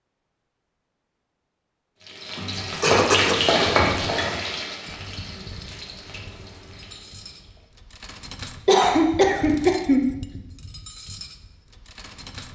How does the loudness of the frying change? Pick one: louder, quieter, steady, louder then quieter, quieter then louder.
quieter.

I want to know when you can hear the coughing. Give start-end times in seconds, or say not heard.
2.5-4.0, 8.7-10.1.